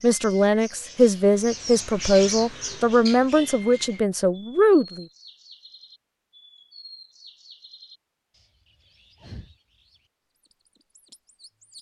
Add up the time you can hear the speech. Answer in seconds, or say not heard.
5 s.